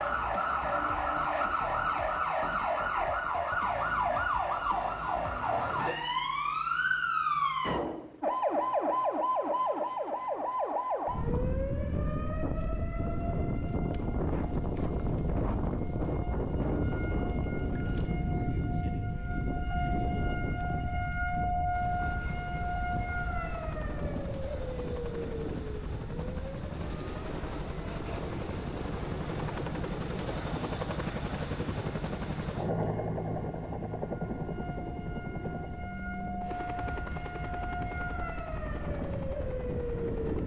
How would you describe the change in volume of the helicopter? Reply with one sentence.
The loudness of the helicopter goes up, then down.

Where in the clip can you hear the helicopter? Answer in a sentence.
You can hear the helicopter from 21.7 to 40.4 s.